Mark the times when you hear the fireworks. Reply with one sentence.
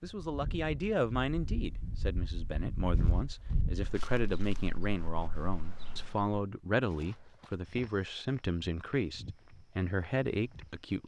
You can't hear the fireworks here.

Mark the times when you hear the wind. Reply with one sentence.
The wind can be heard from 0.0 to 6.4 s.